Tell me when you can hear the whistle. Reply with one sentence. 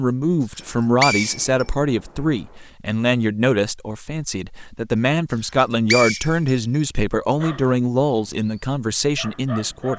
The whistle can be heard from 0.6 to 1.6 s and from 5.5 to 6.5 s.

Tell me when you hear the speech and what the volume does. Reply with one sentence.
The speech can be heard from 0.0 to 9.9 s, at a steady volume.